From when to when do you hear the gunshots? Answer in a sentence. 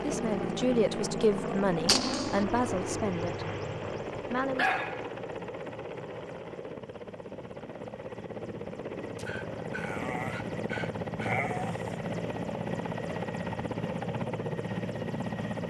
The gunshots can be heard from 1.9 to 2.5 s.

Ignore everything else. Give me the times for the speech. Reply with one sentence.
You can hear the speech from 0.0 to 3.5 s and from 4.3 to 4.7 s.